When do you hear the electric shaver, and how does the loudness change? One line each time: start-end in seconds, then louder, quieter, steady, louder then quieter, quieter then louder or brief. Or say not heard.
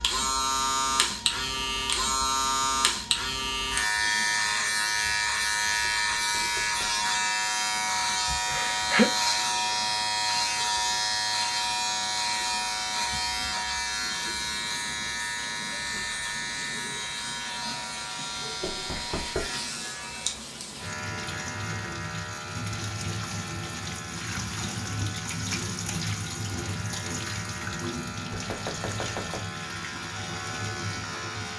0.0-31.5 quieter.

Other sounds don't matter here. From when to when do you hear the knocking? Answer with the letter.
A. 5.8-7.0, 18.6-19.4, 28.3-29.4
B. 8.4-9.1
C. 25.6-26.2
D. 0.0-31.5
A.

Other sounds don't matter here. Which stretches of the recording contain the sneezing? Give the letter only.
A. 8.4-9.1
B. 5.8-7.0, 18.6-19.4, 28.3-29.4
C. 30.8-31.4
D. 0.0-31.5
A.